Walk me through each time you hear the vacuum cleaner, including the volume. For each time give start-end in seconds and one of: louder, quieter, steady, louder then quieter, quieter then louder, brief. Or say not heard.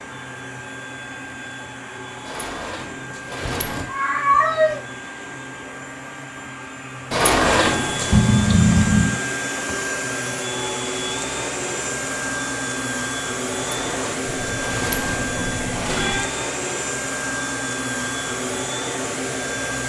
0.0-19.8 louder.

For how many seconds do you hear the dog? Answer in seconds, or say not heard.
not heard.